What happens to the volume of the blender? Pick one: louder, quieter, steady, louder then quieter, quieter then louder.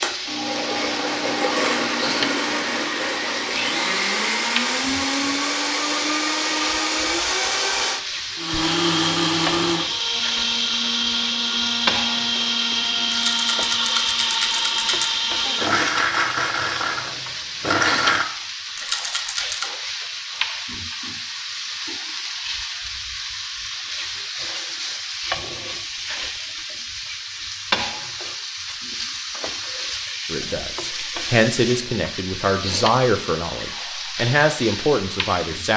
steady.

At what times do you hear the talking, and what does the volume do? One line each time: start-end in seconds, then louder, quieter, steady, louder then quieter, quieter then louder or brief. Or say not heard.
30.3-35.7 steady.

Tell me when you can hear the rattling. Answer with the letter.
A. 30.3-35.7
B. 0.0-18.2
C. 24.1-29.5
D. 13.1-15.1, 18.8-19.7
D.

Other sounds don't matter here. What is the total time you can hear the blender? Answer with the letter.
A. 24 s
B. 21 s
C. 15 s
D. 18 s
D.